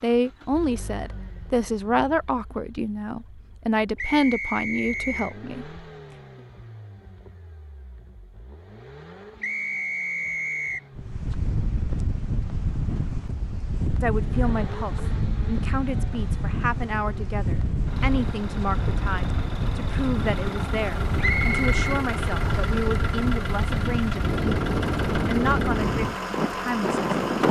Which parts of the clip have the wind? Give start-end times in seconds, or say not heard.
10.9-27.4.